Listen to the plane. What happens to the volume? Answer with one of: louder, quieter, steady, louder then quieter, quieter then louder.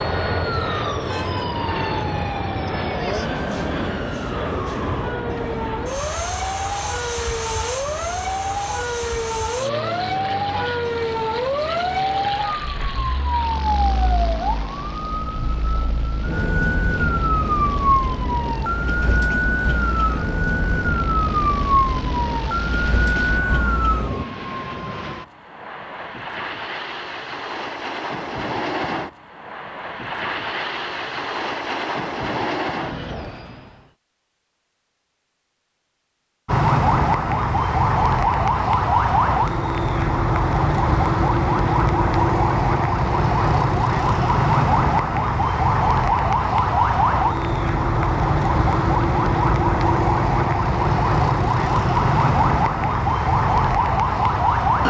quieter then louder.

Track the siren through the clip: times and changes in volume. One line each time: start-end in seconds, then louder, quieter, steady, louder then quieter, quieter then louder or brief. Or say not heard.
0.0-24.2 louder
36.5-54.8 steady.